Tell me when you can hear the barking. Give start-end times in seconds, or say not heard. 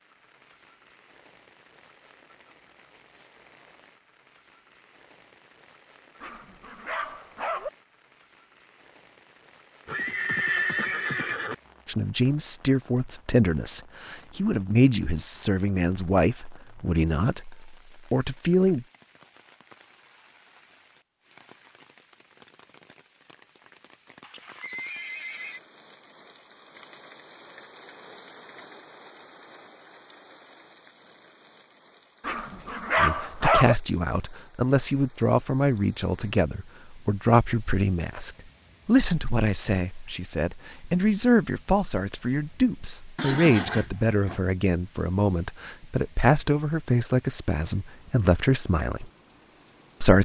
6.2-7.7, 32.2-33.8.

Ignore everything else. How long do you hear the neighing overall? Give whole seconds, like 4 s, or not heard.
4 s.